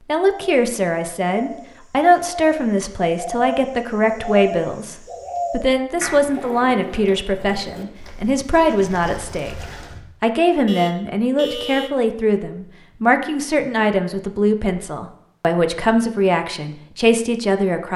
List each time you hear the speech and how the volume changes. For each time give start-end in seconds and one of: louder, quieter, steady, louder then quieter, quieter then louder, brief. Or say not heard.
0.1-17.9 steady.